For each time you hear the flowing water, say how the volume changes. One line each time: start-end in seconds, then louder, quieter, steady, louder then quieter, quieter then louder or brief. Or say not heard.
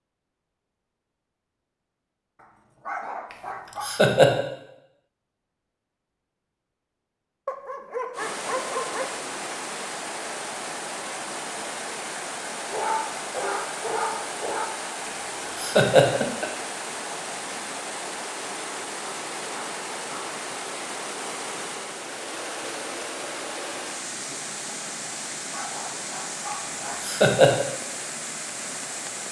8.1-29.2 steady.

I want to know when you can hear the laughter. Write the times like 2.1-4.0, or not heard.
3.8-4.3, 15.6-16.5, 27.0-27.6.